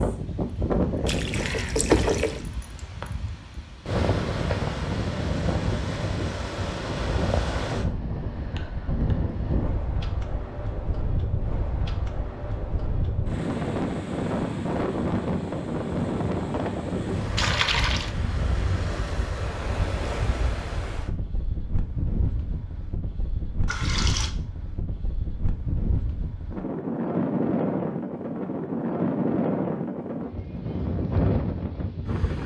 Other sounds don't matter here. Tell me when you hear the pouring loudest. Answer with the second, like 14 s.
2 s.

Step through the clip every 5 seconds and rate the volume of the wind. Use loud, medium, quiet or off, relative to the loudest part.
loud, loud, loud, loud, medium, loud, loud.